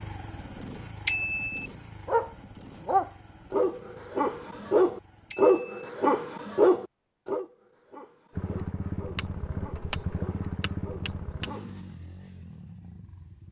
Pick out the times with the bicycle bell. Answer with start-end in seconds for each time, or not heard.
1.1-1.6, 5.3-5.9, 9.2-11.6.